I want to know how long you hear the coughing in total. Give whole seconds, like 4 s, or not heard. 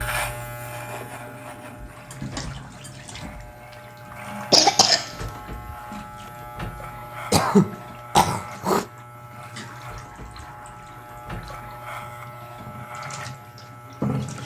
2 s.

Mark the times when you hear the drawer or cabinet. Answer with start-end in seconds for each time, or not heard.
not heard.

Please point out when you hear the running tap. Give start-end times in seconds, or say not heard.
0.1-14.4.